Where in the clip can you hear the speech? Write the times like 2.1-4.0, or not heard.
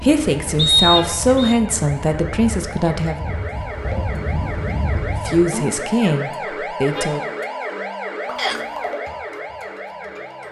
0.0-3.2, 5.0-7.2.